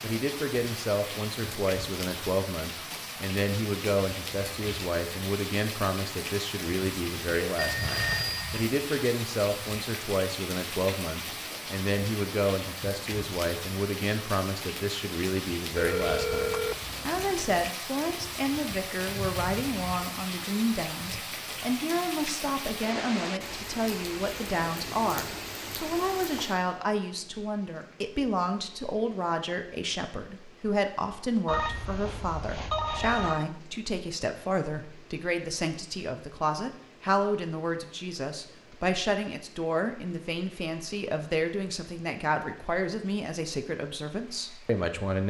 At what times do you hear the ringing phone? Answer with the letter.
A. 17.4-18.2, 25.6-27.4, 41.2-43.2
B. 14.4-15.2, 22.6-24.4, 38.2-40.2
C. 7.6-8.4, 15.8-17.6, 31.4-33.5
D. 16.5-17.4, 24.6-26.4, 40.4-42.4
C.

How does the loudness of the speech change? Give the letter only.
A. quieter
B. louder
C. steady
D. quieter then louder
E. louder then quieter
C.